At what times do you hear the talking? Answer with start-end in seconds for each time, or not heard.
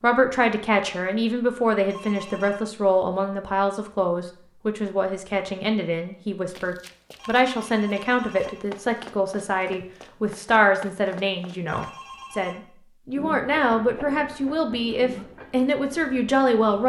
0.0-16.8.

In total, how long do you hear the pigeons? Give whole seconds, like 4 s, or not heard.
not heard.